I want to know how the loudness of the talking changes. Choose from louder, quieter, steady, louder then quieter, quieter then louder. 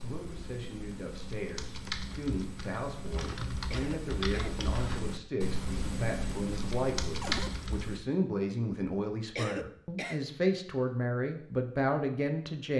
louder.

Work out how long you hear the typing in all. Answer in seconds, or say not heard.
8 s.